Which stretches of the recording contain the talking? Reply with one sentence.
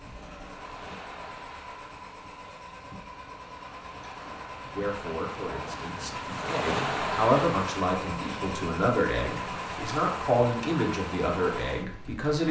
The talking can be heard from 4.7 to 12.4 s.